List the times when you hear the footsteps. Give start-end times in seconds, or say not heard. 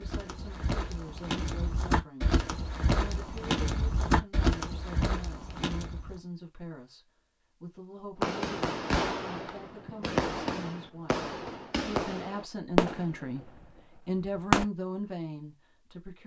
0.0-6.2.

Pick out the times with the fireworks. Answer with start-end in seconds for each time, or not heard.
8.2-14.7.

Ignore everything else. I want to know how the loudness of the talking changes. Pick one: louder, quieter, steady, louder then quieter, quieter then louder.
louder.